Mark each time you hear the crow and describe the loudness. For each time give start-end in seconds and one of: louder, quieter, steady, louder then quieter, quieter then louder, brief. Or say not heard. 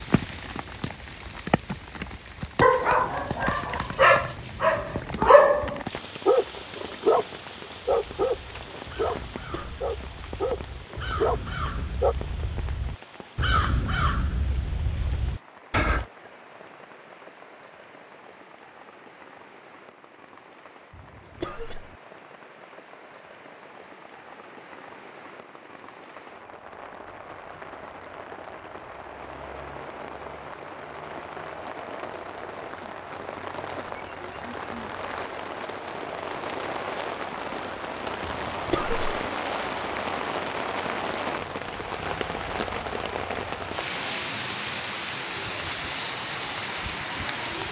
8.0-16.1 louder then quieter.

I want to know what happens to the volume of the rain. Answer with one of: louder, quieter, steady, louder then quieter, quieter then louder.
quieter then louder.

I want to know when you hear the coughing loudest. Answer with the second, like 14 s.
39 s.